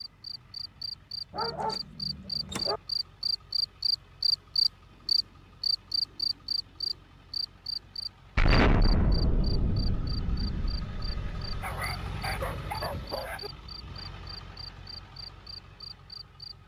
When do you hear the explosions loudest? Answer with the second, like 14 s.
9 s.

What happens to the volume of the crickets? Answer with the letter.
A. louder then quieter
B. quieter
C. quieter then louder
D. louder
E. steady
A.